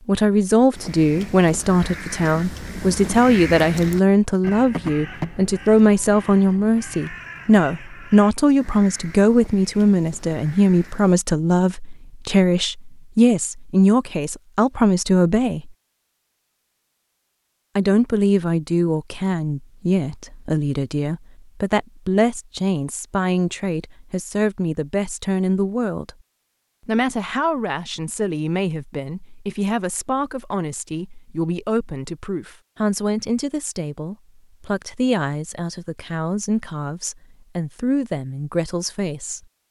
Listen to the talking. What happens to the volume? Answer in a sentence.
The loudness of the talking goes down.